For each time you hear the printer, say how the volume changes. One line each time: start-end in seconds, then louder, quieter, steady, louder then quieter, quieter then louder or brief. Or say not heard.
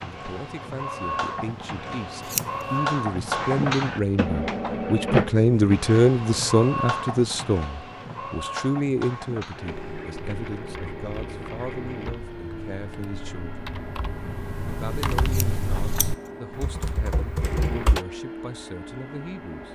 0.0-19.7 quieter.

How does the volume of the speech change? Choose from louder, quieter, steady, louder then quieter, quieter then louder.
louder then quieter.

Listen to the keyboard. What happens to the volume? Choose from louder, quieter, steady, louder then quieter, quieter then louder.
louder.